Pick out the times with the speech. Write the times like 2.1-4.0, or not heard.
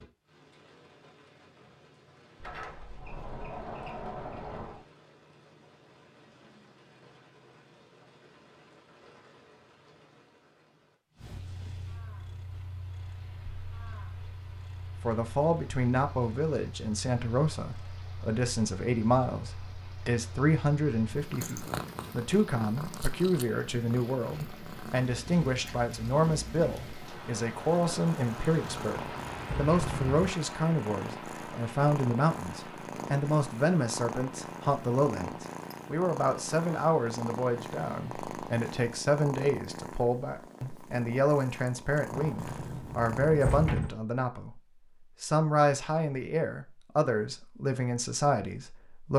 15.0-44.6, 45.2-49.1.